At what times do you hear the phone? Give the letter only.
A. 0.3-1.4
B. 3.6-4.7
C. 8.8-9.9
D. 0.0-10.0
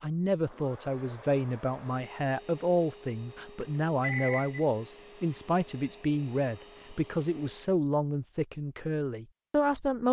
B.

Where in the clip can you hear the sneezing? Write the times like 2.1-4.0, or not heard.
not heard.